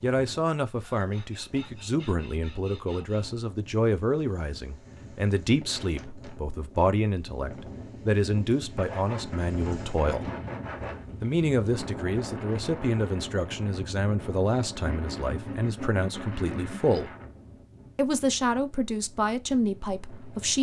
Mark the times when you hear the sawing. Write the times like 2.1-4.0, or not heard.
0.8-3.4, 8.8-11.1, 14.8-16.8.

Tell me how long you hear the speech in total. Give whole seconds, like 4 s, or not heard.
19 s.